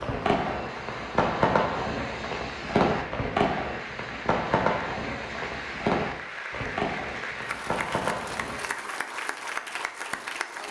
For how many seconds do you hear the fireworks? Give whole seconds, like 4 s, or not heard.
9 s.